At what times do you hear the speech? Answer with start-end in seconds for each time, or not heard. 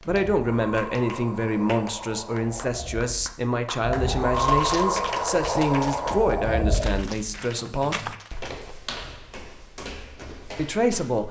0.1-8.1, 10.6-11.2.